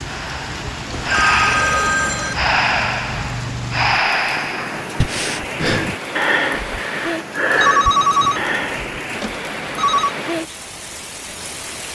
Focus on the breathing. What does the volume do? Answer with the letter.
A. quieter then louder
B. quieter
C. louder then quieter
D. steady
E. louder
D.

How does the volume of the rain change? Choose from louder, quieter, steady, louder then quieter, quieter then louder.
steady.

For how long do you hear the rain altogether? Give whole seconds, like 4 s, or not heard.
12 s.